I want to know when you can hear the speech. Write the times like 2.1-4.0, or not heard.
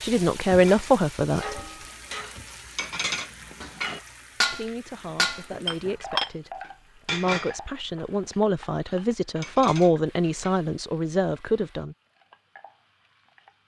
0.0-1.6, 4.5-11.9.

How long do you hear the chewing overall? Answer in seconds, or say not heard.
not heard.